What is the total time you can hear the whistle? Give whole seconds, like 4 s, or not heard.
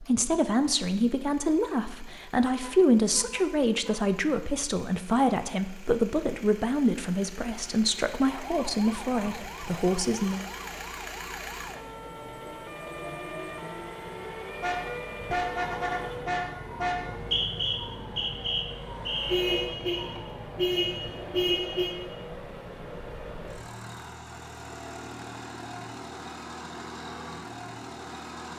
2 s.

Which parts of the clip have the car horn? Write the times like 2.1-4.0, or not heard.
2.5-4.0, 14.6-17.0, 19.2-21.9.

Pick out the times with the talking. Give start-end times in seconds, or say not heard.
0.0-10.4.